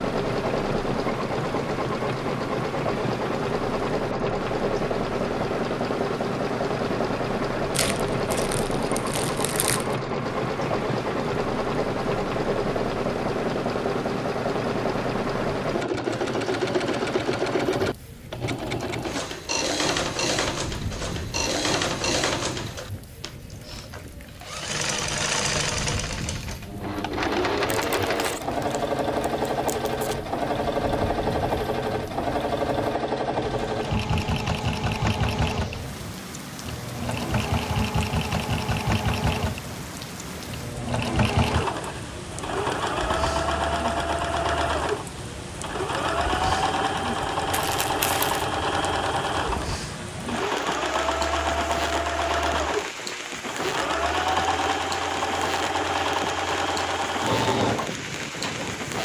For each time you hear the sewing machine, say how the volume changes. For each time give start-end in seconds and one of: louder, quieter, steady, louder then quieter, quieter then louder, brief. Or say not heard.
0.0-59.0 steady.